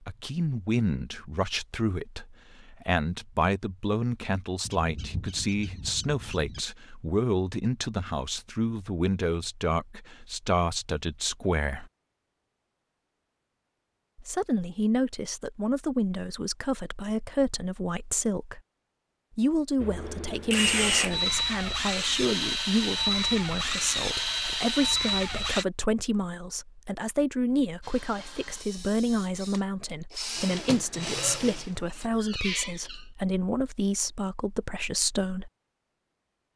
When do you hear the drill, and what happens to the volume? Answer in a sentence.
You can hear the drill from 19.8 to 25.6 s, at a steady volume; and from 27.8 to 32.1 s, getting louder.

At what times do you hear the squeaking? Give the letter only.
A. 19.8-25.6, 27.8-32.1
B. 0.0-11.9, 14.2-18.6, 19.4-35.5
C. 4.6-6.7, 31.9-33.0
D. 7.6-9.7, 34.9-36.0
C.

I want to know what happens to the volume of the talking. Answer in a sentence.
The volume of the talking stays about the same.